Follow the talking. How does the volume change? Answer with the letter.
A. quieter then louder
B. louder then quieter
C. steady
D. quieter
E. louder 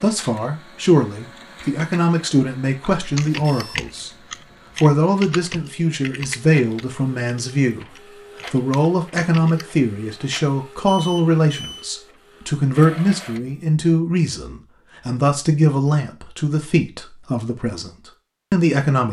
C.